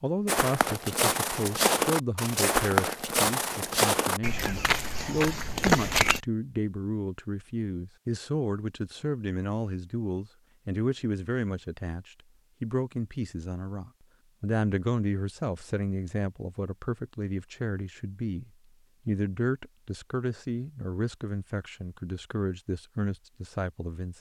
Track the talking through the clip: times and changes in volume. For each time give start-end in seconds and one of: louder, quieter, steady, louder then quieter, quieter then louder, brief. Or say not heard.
0.0-24.1 steady.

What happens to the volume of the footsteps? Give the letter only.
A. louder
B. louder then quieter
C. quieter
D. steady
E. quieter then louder
D.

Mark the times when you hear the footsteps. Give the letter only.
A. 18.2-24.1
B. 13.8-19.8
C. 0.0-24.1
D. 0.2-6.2
D.